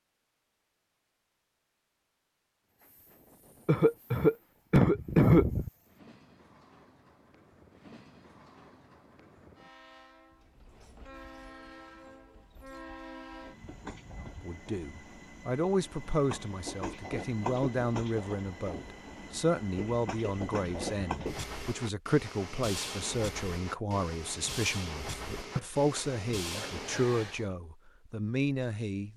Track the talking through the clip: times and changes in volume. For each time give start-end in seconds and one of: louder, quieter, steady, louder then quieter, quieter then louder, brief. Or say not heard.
14.4-29.1 steady.